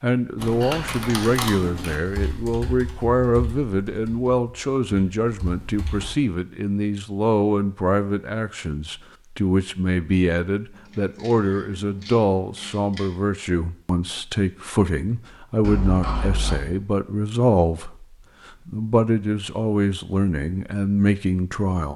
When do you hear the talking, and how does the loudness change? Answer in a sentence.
You can hear the talking from 0.0 to 21.9 s, at a steady volume.